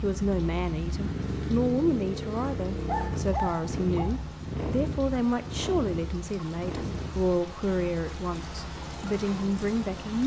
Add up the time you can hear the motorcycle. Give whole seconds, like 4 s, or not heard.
10 s.